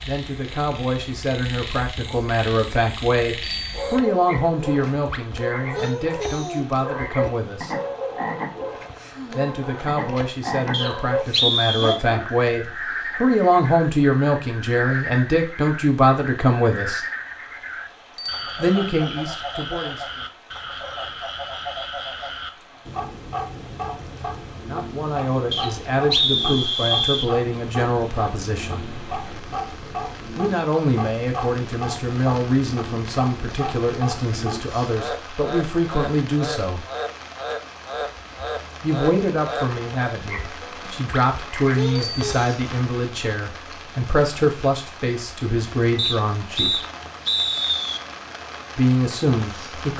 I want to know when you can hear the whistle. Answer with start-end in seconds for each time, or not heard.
10.7-12.0, 25.5-27.3, 46.0-48.0.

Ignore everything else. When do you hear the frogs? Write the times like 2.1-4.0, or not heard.
0.0-42.5.